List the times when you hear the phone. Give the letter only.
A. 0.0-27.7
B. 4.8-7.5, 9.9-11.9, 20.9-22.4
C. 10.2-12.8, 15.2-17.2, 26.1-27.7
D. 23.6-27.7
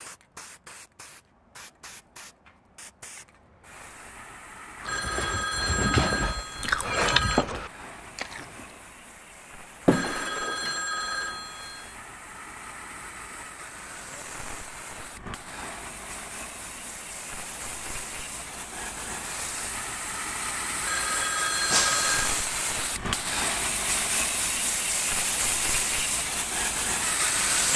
B.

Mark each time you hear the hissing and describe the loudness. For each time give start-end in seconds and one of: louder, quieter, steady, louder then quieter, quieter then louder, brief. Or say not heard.
0.0-27.7 louder.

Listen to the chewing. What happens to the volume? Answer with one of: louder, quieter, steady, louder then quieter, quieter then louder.
louder then quieter.